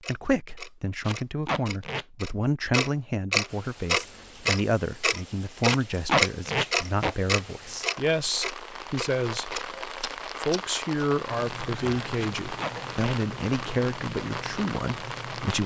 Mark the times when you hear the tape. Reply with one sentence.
You can hear the tape from 1.1 to 2.0 s, from 5.7 to 7.2 s and from 12.2 to 13.2 s.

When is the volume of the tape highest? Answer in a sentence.
The loudest moment of the tape is at 6 seconds.